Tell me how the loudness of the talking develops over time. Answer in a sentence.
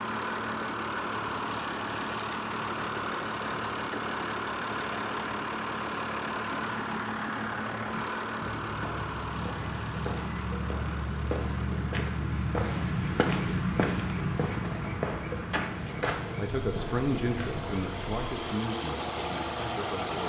The volume of the talking goes down.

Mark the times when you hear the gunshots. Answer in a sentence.
The gunshots can be heard from 14.6 to 15.1 s.